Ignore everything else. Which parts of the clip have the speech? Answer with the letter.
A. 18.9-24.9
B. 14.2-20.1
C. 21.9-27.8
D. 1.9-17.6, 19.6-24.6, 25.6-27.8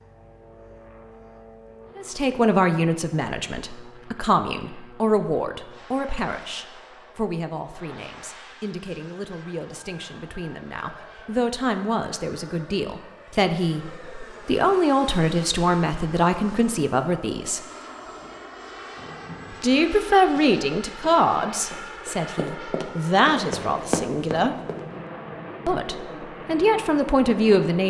D.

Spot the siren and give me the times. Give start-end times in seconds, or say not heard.
not heard.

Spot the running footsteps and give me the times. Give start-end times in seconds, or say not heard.
18.9-24.9.